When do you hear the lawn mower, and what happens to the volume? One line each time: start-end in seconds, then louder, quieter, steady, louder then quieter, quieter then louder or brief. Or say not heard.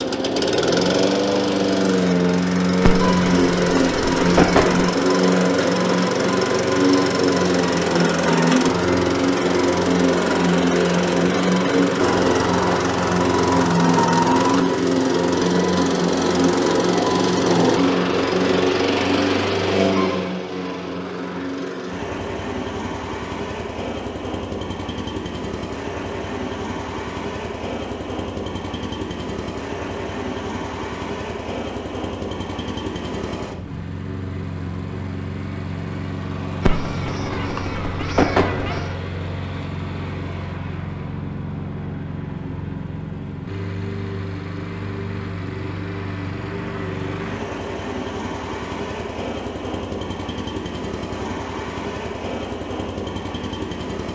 0.0-54.0 quieter.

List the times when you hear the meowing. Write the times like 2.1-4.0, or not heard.
2.8-4.9, 36.6-39.0.